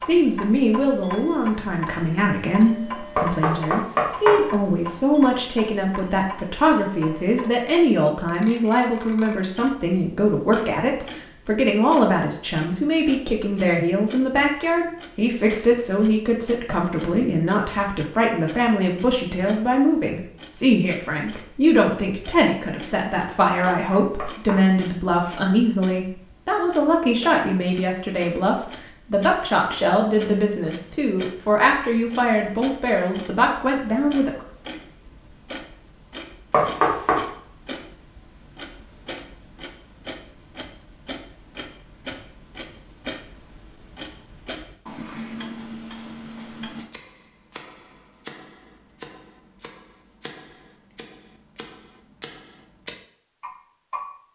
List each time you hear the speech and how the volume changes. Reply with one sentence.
You can hear the speech from 0.1 to 34.5 s, at a steady volume.